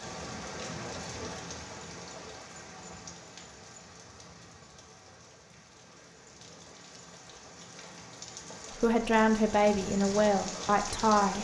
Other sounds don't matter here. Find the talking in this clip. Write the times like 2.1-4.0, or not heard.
8.8-11.4.